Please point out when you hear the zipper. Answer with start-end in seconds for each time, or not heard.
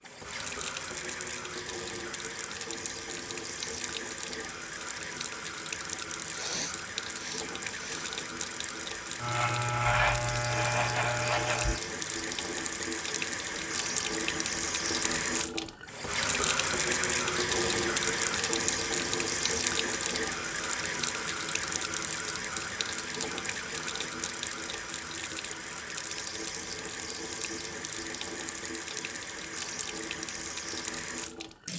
not heard.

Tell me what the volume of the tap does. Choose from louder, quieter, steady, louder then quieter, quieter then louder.
louder then quieter.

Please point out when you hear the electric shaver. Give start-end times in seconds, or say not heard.
9.2-11.8.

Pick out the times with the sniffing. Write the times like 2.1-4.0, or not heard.
6.3-8.2.